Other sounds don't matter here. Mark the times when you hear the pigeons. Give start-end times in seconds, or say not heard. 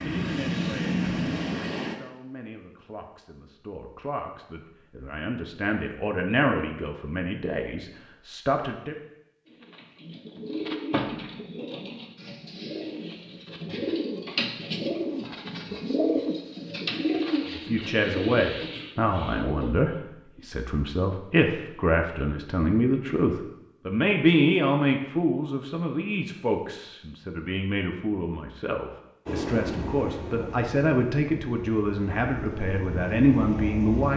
9.4-19.9.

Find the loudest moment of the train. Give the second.
1 s.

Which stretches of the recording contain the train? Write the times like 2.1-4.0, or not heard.
0.0-1.9, 29.2-34.1.